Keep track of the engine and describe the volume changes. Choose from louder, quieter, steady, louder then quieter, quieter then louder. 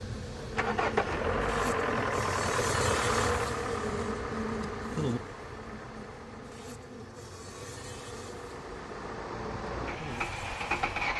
quieter then louder.